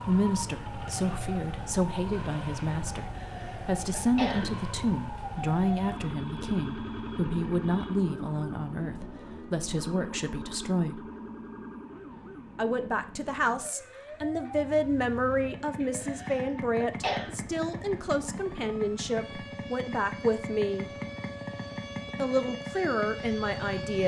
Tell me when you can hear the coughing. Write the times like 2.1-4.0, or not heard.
3.0-4.5, 15.8-17.4.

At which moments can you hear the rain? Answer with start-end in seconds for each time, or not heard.
not heard.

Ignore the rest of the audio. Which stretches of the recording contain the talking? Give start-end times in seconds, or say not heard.
0.1-11.1, 12.6-20.9, 22.1-24.0.